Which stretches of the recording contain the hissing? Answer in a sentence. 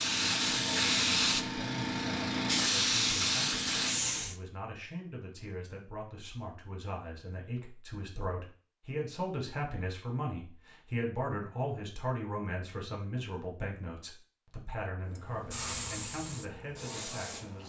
The hissing can be heard from 0.0 to 4.3 s and from 15.1 to 17.6 s.